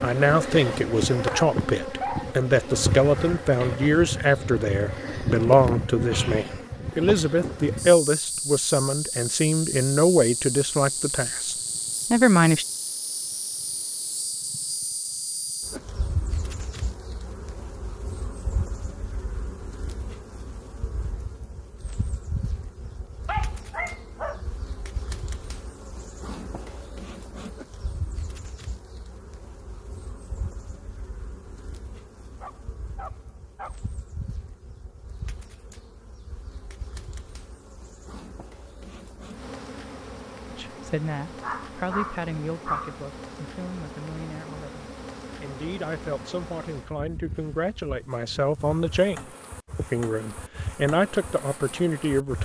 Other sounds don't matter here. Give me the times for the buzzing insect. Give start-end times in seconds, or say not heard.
0.0-52.4.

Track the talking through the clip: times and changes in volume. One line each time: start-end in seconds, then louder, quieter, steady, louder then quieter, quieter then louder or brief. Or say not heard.
0.0-12.7 steady
40.5-52.4 quieter then louder.